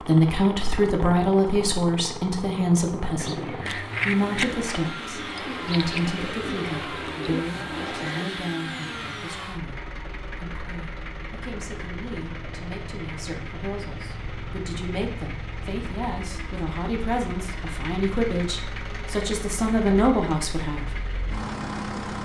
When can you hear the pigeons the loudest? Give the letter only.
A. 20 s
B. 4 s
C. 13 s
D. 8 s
B.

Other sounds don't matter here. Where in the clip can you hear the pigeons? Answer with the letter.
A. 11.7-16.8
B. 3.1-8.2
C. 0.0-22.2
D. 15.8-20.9
B.